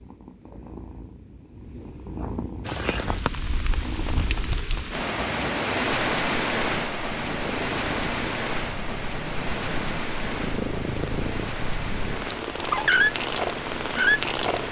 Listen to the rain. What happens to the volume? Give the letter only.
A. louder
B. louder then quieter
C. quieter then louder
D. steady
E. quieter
B.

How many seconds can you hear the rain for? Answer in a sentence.
The rain can be heard for 12 seconds in total.